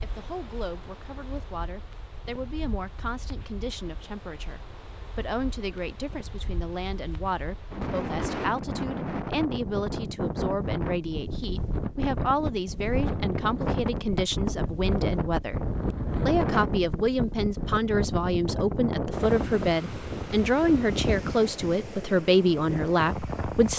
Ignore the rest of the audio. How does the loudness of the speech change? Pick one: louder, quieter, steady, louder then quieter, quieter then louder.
louder.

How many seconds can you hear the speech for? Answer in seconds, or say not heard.
23 s.